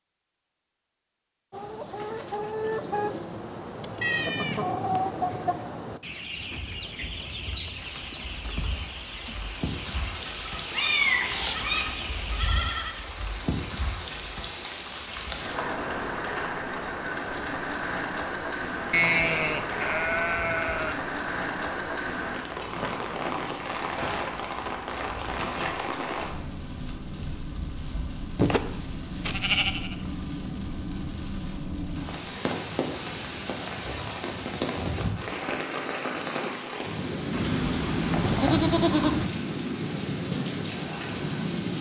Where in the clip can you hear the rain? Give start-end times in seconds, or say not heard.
6.3-41.7.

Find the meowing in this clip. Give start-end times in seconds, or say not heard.
10.7-11.8.